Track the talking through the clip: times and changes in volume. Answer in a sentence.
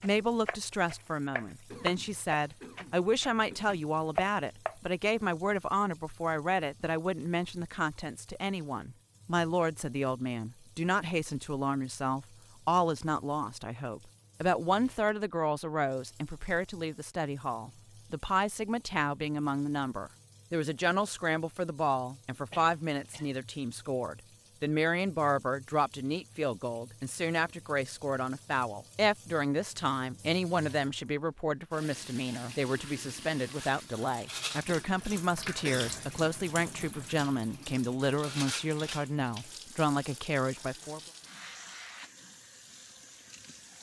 You can hear the talking from 0.0 to 41.0 s, at a steady volume.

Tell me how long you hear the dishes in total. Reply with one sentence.
You can't hear the dishes here.